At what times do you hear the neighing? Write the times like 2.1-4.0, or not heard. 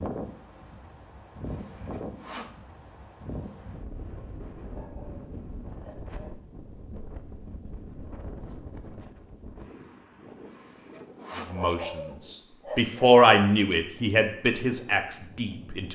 not heard.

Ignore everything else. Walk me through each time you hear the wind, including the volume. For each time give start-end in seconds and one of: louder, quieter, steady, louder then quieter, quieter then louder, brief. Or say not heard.
0.0-15.9 quieter.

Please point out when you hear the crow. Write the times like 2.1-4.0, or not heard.
not heard.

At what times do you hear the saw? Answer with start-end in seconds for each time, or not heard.
1.4-2.6, 10.4-11.6.